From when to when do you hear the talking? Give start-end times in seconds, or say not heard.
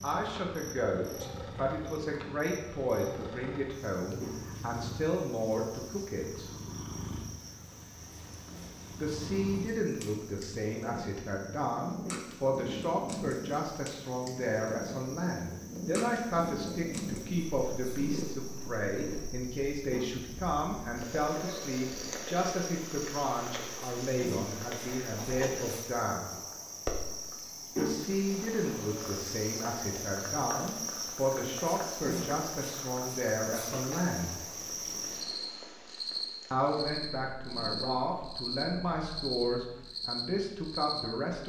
0.0-6.5, 8.9-26.4, 27.8-34.4, 36.5-41.4.